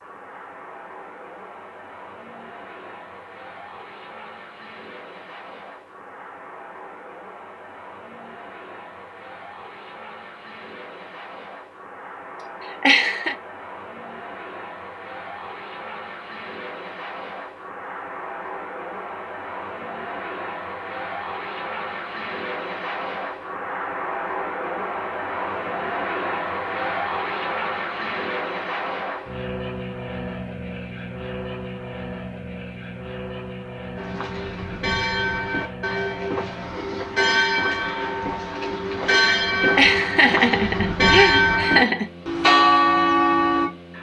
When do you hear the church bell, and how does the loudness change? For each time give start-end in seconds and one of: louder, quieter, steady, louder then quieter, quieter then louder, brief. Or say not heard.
34.0-43.7 louder.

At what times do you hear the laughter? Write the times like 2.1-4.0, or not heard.
12.8-13.3, 39.8-42.0.